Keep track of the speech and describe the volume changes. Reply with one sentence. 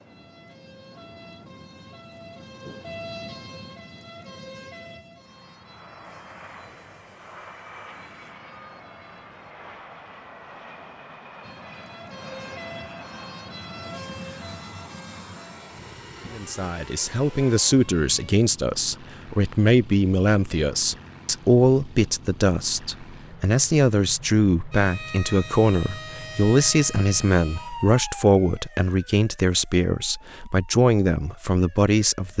The loudness of the speech stays about the same.